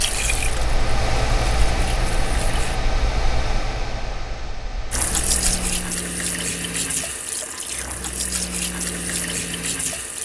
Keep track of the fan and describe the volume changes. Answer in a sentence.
The volume of the fan goes down.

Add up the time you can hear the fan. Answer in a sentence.
The fan can be heard for 6 seconds in total.